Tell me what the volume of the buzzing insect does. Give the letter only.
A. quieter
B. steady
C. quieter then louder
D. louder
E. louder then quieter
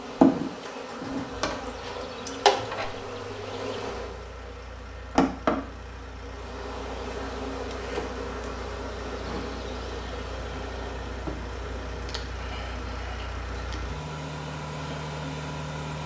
A.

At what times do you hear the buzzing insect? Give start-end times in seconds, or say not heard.
0.0-16.0.